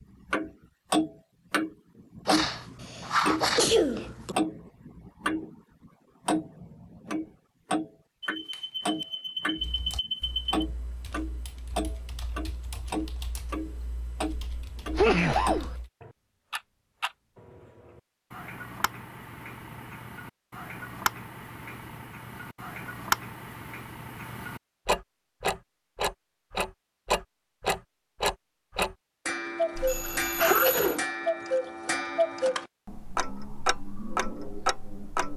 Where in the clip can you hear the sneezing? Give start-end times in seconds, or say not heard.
2.2-4.3, 14.9-15.8, 29.8-31.1.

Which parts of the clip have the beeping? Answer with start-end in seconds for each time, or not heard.
8.2-10.7, 29.9-30.8.